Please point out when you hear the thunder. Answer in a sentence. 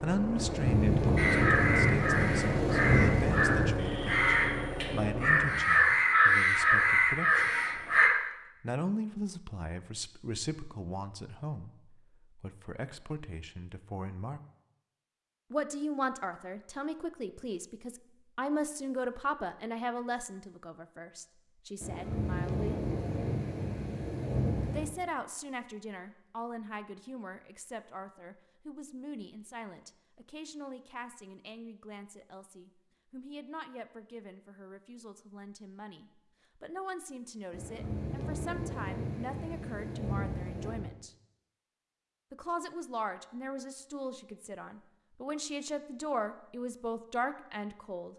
You can hear the thunder from 0.3 to 3.7 s, from 21.8 to 24.9 s and from 37.5 to 40.9 s.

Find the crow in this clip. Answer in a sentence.
The crow can be heard from 1.1 to 8.1 s.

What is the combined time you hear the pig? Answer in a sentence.
The pig can't be heard in this clip.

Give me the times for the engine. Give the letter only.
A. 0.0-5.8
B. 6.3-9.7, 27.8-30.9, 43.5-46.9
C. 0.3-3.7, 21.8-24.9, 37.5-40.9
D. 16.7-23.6
A.